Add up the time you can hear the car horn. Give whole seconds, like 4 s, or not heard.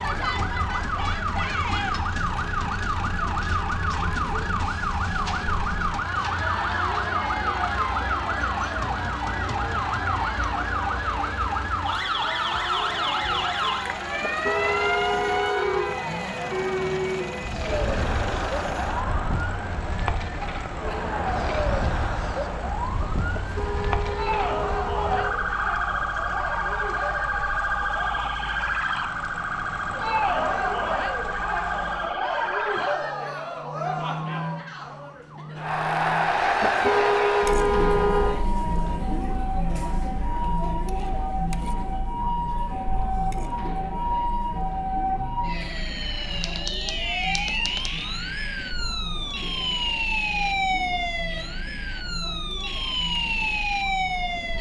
6 s.